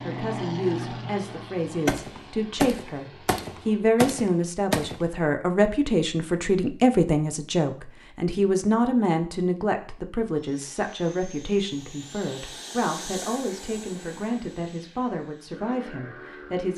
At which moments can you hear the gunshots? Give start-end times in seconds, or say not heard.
1.9-5.0.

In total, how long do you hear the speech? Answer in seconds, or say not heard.
17 s.